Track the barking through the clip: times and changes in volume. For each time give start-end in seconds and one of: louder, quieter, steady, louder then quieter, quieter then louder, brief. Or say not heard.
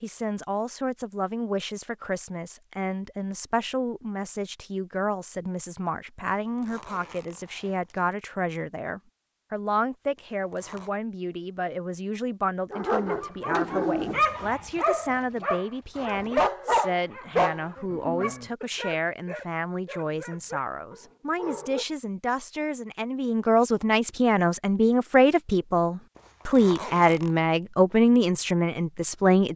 12.7-21.9 quieter.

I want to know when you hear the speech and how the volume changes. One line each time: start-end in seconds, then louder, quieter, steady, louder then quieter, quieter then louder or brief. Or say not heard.
0.0-29.5 louder.